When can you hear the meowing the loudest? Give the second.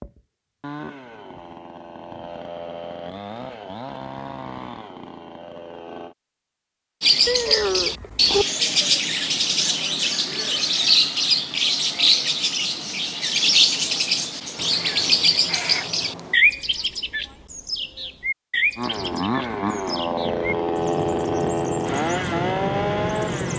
8 s.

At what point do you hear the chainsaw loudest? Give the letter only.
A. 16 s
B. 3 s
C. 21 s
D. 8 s
C.